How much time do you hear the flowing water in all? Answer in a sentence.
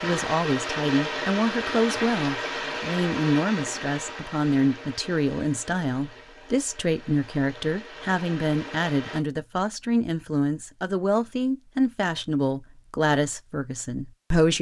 The flowing water can be heard for 9 seconds in total.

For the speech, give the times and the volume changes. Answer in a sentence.
The speech can be heard from 0.0 to 14.5 s, at a steady volume.